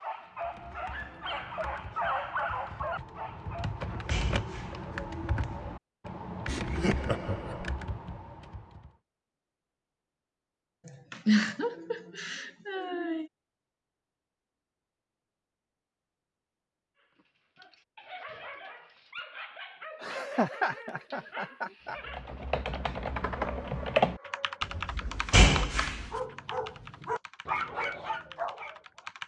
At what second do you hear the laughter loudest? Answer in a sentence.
The loudest moment of the laughter is at 11 seconds.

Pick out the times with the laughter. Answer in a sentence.
You can hear the laughter from 6.5 to 7.7 s, from 10.8 to 13.3 s and from 20.0 to 21.9 s.